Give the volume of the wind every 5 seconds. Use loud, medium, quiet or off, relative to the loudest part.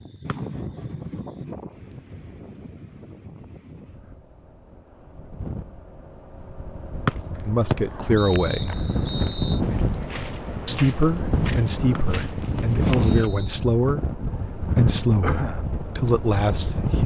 medium, loud, loud, loud.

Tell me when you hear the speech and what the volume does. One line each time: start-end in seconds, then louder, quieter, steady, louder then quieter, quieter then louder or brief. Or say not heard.
7.5-8.8 brief
10.7-17.0 steady.